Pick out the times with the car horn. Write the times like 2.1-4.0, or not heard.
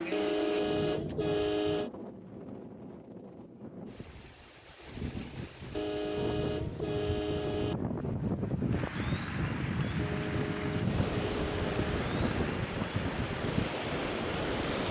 0.1-1.9, 5.7-7.8, 9.9-12.0.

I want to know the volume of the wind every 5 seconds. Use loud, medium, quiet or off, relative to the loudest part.
medium, loud, loud.